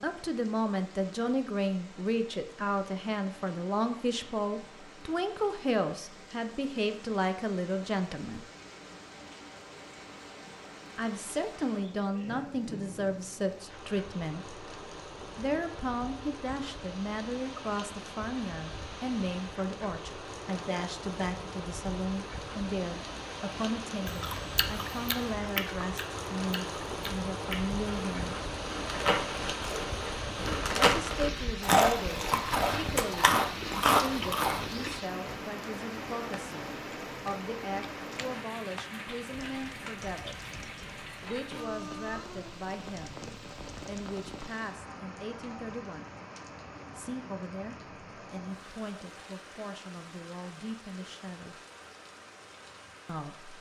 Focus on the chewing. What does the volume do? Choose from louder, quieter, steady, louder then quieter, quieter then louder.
louder.